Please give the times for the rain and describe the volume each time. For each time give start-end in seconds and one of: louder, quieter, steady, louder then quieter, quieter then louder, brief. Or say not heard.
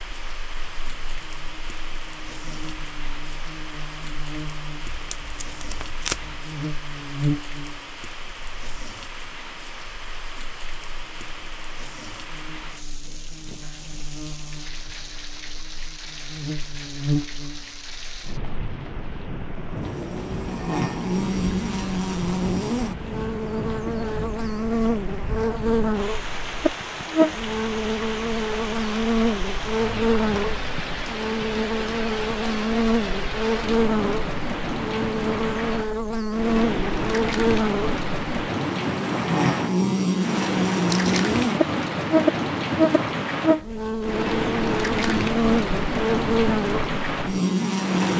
0.0-48.1 louder.